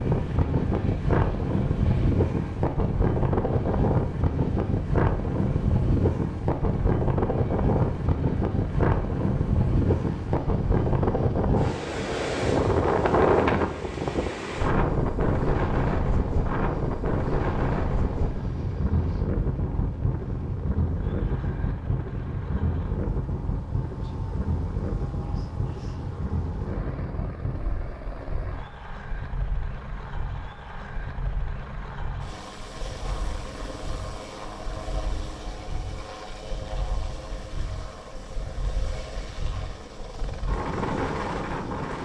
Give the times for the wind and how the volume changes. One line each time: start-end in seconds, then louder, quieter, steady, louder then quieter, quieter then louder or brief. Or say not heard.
0.0-41.9 quieter.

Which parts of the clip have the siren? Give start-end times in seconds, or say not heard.
not heard.